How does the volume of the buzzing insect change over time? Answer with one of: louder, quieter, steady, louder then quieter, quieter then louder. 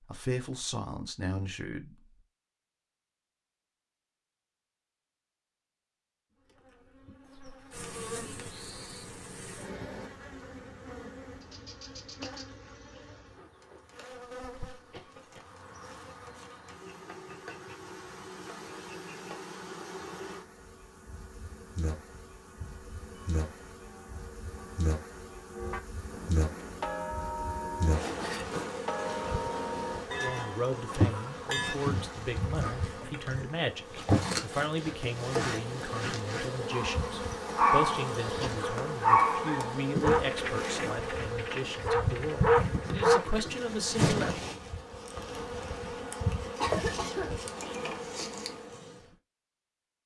louder.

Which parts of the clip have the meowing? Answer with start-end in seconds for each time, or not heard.
not heard.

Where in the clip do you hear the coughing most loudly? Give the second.
47 s.